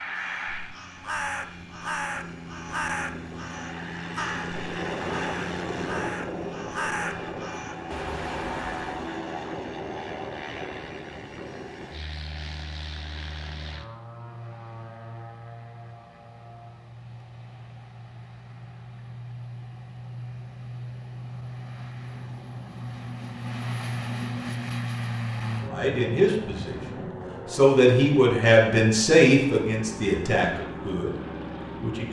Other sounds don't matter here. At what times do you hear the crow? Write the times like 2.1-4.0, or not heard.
0.1-9.1.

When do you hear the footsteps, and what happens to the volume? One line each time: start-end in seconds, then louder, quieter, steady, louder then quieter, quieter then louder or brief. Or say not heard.
not heard.